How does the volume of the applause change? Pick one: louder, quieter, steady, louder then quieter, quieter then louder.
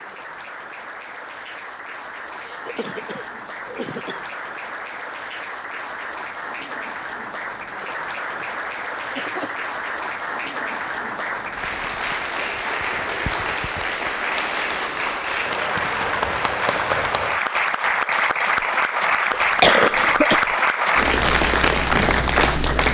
louder.